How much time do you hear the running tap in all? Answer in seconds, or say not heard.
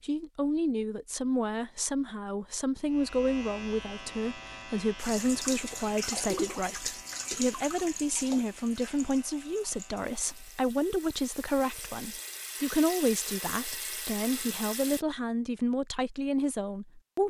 10 s.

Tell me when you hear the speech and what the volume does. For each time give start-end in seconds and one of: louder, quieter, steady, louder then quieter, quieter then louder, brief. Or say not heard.
0.0-17.2 steady.